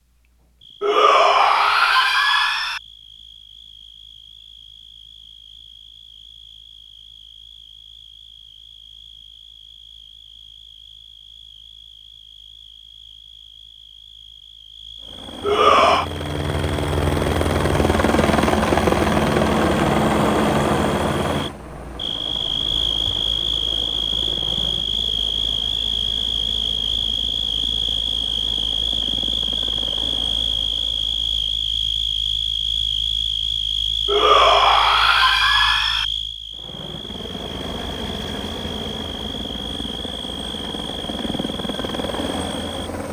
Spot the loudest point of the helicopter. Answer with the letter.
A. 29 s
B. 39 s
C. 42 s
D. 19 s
D.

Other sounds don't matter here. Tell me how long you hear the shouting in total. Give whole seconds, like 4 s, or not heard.
5 s.